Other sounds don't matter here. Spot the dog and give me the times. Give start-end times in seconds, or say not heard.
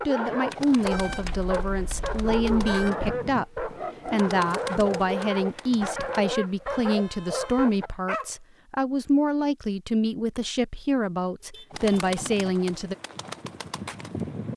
0.0-8.3.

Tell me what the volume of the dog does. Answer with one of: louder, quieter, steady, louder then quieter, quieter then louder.
steady.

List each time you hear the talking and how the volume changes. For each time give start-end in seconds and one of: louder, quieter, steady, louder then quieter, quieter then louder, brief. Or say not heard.
0.1-12.9 steady.